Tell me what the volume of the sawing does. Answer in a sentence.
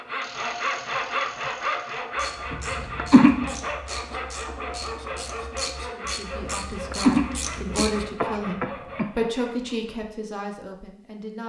The loudness of the sawing goes down.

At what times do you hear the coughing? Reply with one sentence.
The coughing can be heard from 2.5 to 3.5 s and from 6.4 to 9.1 s.